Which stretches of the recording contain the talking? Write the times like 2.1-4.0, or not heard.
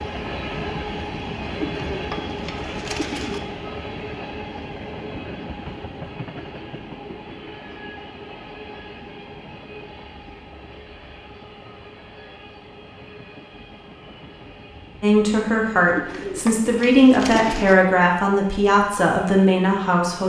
15.0-20.2.